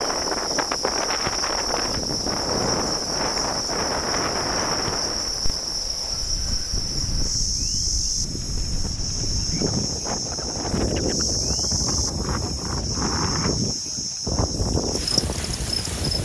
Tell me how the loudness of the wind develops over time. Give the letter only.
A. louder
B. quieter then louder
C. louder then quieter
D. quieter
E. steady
B.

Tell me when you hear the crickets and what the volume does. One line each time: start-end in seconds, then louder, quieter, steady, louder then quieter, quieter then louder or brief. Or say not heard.
0.0-16.2 steady.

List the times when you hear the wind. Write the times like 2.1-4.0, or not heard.
0.0-16.2.